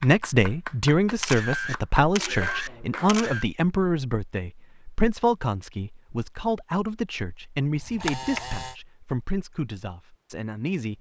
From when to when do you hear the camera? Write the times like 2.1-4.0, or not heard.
1.2-3.5, 7.8-8.8.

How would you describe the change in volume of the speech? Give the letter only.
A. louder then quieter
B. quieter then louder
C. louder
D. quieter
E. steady
D.